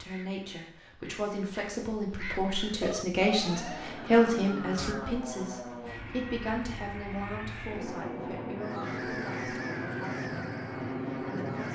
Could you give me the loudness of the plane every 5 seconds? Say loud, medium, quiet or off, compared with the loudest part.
medium, loud, loud.